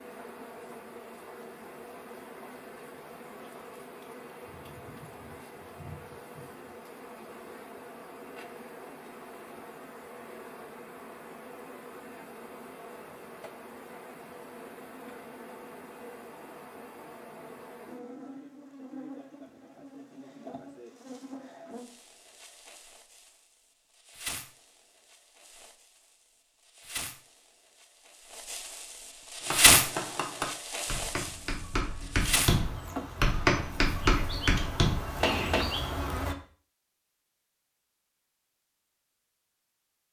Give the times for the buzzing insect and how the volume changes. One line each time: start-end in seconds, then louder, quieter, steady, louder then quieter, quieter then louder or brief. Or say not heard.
0.0-36.4 louder.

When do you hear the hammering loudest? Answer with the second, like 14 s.
33 s.